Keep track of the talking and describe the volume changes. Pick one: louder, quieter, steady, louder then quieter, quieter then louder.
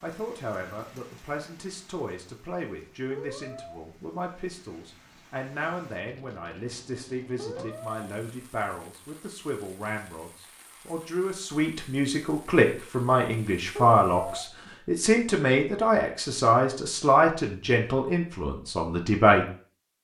louder.